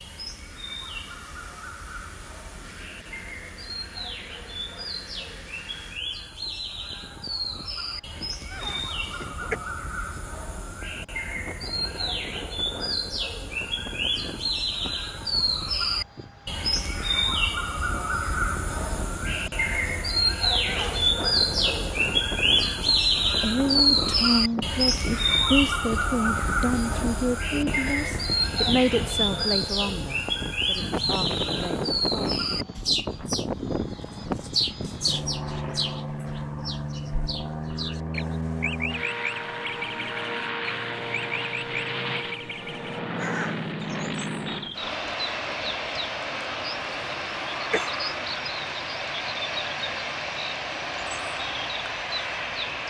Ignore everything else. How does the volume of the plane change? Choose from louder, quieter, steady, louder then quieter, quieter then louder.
louder.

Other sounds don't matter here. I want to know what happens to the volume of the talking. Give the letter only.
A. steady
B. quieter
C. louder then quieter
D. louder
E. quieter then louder
B.